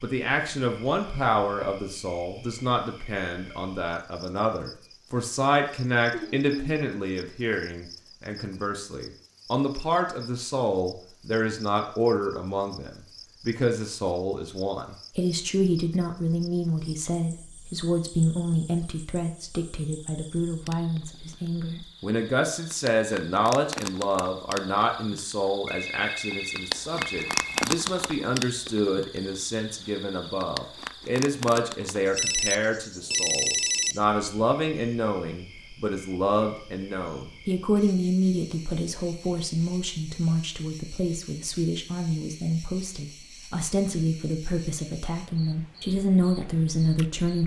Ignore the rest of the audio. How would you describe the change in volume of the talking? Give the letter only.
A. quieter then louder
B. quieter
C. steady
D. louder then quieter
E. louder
C.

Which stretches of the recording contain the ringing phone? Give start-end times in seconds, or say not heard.
6.1-6.8, 25.6-27.6, 32.1-34.0.